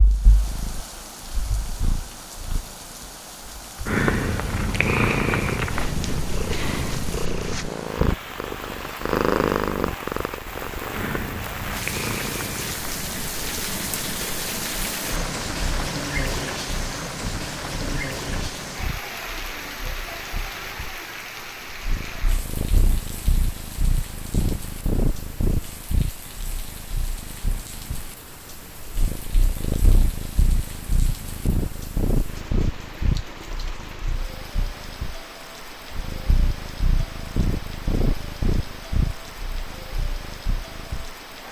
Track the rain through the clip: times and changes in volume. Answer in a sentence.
The rain can be heard from 0.0 to 41.4 s, getting louder then quieter.